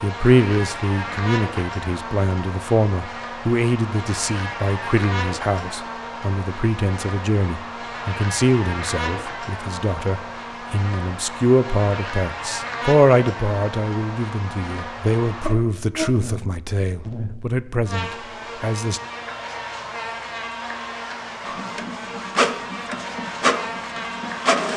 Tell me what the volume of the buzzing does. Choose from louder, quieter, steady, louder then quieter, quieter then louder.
steady.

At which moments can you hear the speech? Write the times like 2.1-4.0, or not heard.
0.0-19.0.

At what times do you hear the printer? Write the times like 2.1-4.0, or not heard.
21.4-24.7.